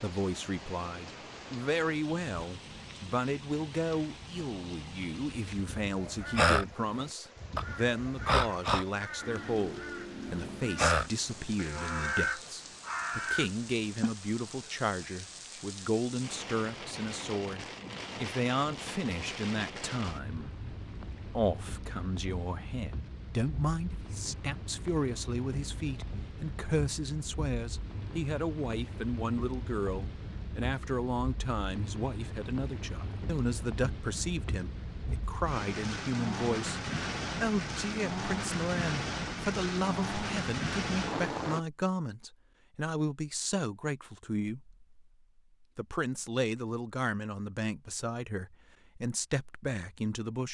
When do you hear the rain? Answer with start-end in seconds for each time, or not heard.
0.0-41.6.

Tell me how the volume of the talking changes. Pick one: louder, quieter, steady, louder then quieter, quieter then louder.
steady.